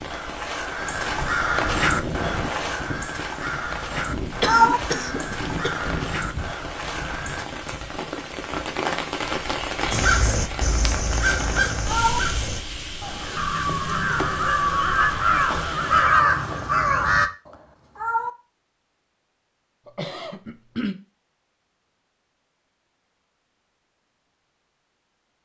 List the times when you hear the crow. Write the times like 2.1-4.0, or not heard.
0.1-7.5, 9.9-17.3.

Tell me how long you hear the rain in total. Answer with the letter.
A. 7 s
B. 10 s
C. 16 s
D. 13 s
C.